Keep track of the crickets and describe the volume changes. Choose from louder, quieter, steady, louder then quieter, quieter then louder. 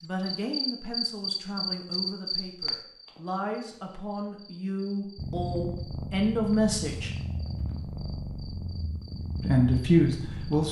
quieter.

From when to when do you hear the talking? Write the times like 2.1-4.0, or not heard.
0.0-7.1, 9.4-10.6.